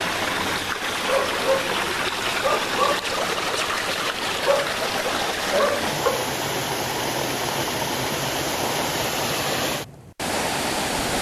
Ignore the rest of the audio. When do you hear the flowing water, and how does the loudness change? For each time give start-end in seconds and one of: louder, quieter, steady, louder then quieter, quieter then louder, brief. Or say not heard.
0.0-11.1 steady.